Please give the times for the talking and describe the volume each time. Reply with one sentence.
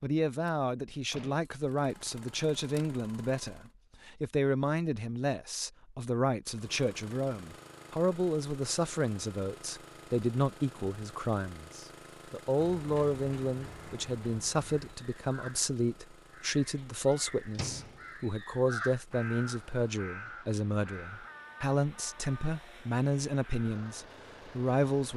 The talking can be heard from 0.0 to 25.1 s, at a steady volume.